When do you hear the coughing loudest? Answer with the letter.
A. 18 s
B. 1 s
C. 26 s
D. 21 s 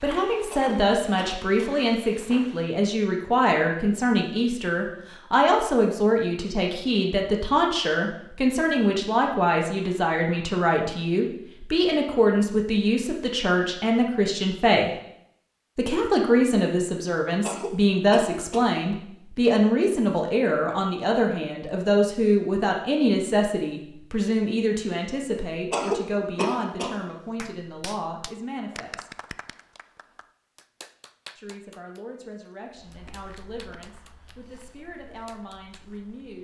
C.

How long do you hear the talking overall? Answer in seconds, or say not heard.
33 s.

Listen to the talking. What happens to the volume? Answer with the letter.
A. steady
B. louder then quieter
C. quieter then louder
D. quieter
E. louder
D.